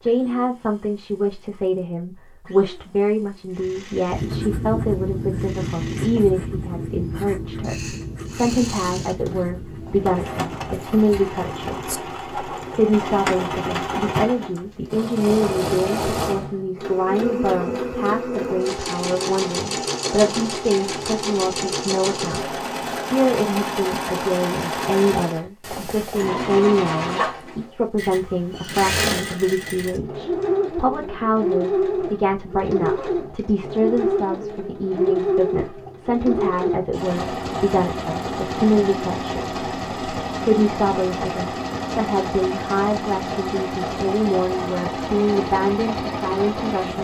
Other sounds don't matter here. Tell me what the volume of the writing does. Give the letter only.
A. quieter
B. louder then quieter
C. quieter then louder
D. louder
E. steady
A.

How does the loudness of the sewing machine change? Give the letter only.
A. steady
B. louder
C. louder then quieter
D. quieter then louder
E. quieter
B.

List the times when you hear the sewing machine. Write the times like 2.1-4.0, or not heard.
0.0-47.0.